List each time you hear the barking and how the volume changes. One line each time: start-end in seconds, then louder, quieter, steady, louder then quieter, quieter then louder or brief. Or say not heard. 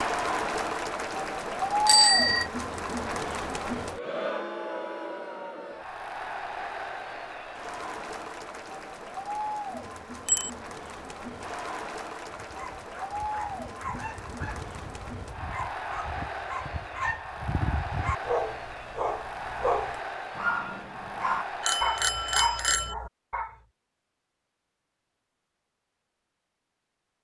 12.3-23.6 louder.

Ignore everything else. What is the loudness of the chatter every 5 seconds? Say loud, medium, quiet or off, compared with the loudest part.
loud, medium, medium, medium, medium, off.